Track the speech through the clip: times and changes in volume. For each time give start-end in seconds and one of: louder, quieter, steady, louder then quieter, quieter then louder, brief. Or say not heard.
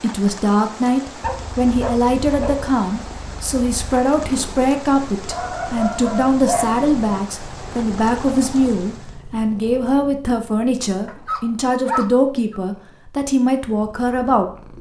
0.0-14.5 steady.